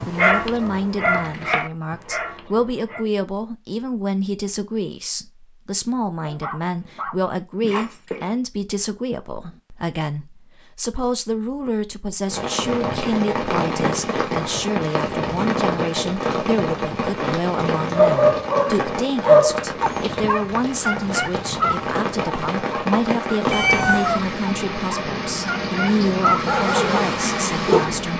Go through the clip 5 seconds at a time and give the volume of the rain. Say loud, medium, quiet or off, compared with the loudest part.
off, off, loud, loud, loud, loud.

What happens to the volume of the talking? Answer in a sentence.
The volume of the talking stays about the same.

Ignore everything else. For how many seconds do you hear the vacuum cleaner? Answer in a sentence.
You can't hear the vacuum cleaner here.